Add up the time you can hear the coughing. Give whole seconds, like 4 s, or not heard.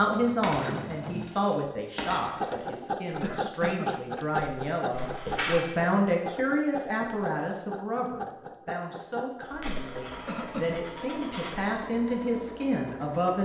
2 s.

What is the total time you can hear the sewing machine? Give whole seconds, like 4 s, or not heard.
13 s.